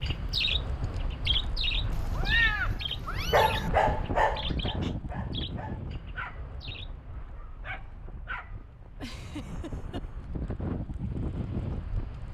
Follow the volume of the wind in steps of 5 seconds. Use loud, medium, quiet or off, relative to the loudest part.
loud, medium, loud.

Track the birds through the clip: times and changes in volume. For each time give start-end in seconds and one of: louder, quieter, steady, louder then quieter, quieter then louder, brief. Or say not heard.
0.0-7.0 quieter.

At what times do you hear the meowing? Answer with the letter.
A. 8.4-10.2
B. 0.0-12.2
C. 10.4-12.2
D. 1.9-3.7
D.